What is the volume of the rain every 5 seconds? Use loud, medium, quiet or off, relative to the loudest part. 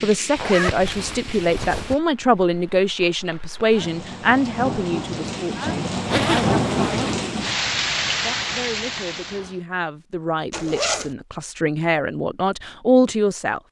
medium, loud, off.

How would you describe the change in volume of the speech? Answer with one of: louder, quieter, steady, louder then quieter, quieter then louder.
quieter then louder.